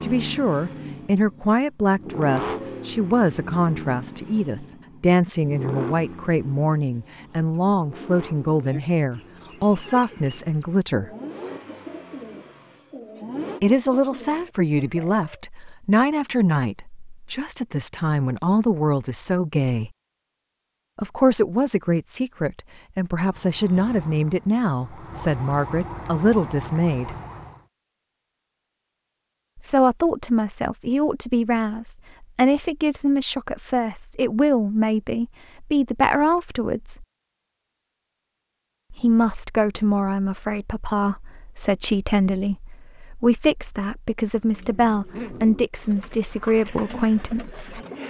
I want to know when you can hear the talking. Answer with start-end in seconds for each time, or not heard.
0.0-11.1, 13.6-19.9, 20.9-27.1, 29.6-37.0, 38.9-47.8.